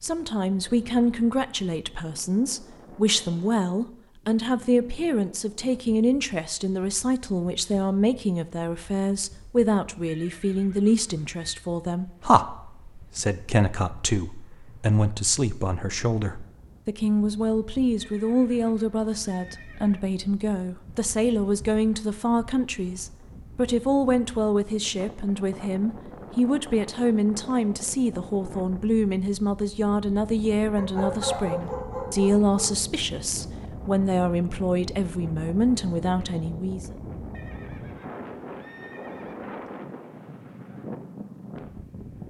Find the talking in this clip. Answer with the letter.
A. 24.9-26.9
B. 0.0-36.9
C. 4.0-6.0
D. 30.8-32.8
B.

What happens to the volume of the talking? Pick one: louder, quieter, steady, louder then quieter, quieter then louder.
steady.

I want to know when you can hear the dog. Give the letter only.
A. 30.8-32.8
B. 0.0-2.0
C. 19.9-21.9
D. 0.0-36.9
A.